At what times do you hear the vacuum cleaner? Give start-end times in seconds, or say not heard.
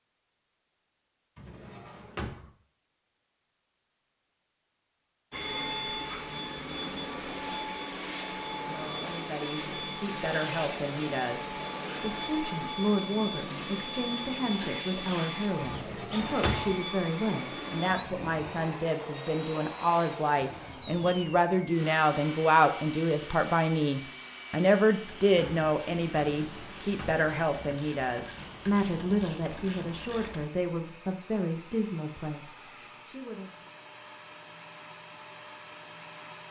5.3-36.4.